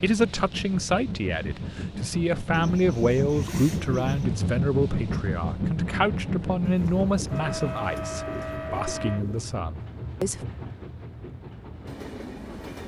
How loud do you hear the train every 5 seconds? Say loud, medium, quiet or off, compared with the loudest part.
loud, loud, medium.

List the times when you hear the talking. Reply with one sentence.
You can hear the talking from 0.0 to 10.4 s.